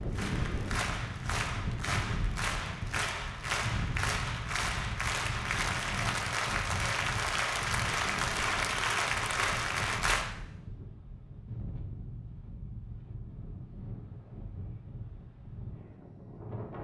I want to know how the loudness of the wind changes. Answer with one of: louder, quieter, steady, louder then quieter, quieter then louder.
quieter.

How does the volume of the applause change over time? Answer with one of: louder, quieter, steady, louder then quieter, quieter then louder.
louder.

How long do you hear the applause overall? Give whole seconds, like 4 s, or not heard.
10 s.